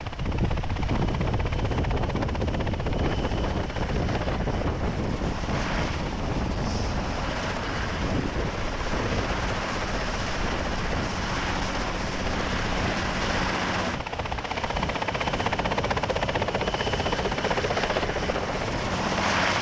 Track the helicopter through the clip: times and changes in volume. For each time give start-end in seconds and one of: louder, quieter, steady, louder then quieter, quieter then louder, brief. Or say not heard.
0.0-19.5 louder.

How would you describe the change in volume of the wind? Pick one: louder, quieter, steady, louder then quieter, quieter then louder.
quieter.